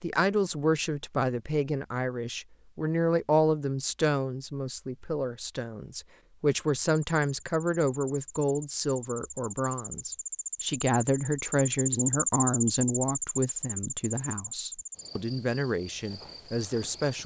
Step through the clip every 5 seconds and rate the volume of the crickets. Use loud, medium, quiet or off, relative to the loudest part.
off, medium, loud, quiet.